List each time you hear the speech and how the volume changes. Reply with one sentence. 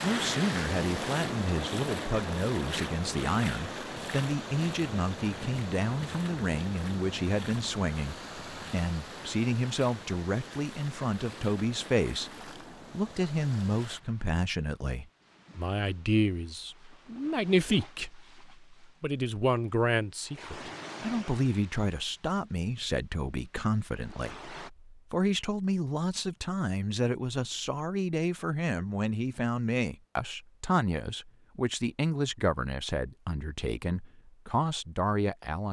The speech can be heard from 0.0 to 35.6 s, at a steady volume.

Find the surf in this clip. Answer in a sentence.
The surf can be heard from 0.0 to 24.7 s.